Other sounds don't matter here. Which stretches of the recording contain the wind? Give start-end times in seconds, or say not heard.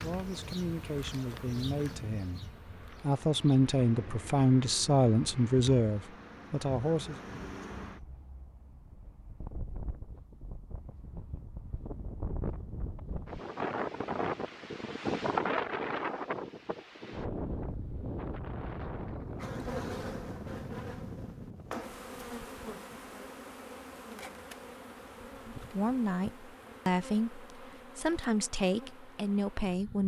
0.0-21.9.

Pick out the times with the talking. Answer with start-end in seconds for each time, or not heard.
0.0-7.2, 25.4-30.0.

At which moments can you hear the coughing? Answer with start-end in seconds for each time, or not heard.
not heard.